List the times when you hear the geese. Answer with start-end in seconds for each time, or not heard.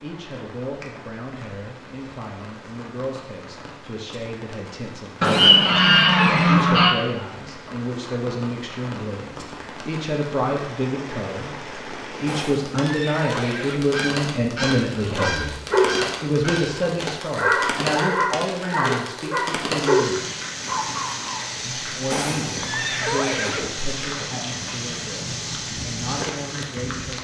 5.2-7.0, 13.9-16.8.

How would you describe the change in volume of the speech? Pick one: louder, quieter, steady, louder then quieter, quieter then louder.
louder then quieter.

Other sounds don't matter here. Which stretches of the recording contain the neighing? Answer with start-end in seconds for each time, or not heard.
5.2-6.8, 12.2-13.8, 22.1-23.7.